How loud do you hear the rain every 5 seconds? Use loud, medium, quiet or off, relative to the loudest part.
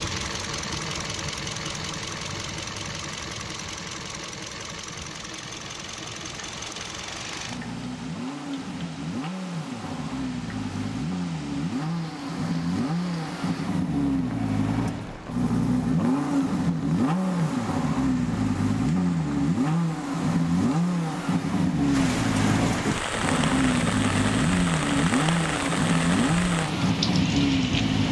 off, quiet, quiet, quiet, loud, loud.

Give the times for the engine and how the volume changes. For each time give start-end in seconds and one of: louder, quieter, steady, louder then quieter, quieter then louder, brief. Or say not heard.
0.0-28.0 louder.